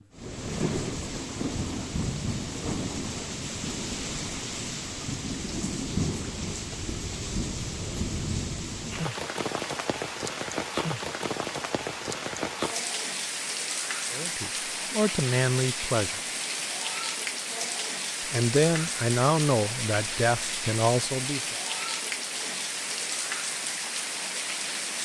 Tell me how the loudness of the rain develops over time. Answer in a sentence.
The loudness of the rain stays about the same.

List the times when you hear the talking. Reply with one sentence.
The talking can be heard from 14.1 to 16.2 s and from 18.3 to 21.6 s.